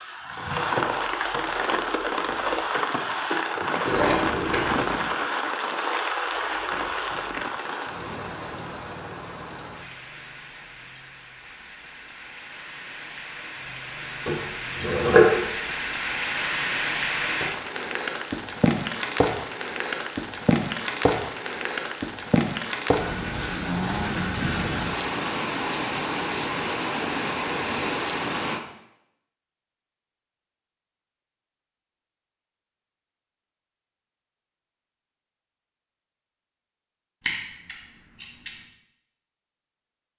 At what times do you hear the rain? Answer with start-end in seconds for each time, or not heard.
0.0-28.6.